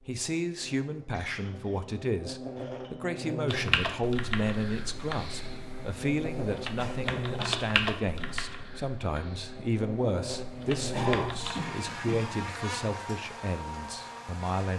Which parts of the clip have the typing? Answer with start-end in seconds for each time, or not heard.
3.5-11.6.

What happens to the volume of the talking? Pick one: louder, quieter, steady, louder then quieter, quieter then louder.
steady.